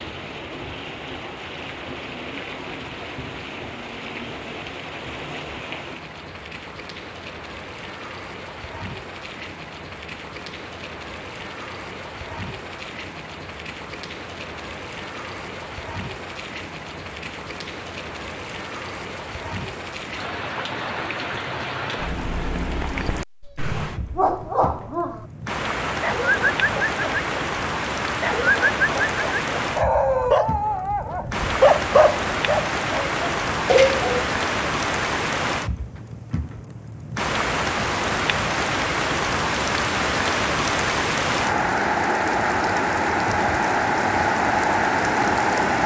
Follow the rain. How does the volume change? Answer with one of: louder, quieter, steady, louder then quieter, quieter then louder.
louder.